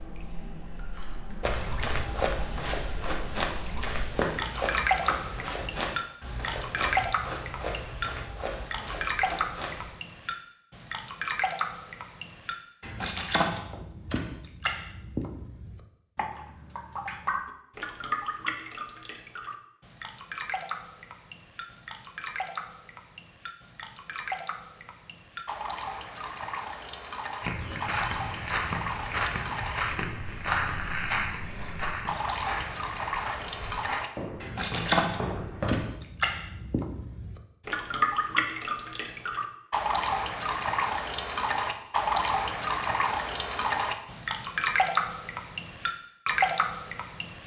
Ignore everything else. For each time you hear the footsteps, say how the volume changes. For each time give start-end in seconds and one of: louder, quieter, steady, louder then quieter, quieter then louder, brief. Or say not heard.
1.4-9.9 quieter
27.4-35.9 quieter.